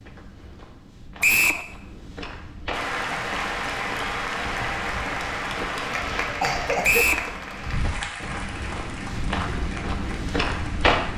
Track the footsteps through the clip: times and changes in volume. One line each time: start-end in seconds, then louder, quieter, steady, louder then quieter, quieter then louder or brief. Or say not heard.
0.0-11.1 louder.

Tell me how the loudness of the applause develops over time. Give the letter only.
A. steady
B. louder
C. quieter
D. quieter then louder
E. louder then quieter
C.